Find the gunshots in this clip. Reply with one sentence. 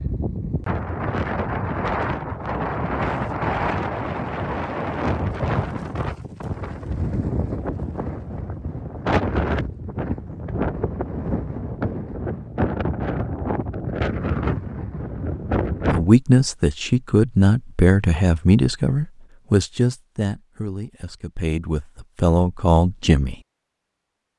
The gunshots can't be heard in this clip.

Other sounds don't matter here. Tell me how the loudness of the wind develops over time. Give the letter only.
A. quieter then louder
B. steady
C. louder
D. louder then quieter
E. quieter
B.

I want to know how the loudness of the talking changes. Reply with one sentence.
The volume of the talking goes down, then up.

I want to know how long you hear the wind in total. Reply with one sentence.
The wind can be heard for 16 seconds in total.